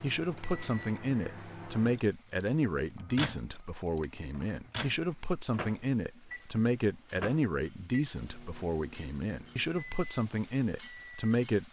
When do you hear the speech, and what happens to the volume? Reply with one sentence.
You can hear the speech from 0.0 to 11.6 s, at a steady volume.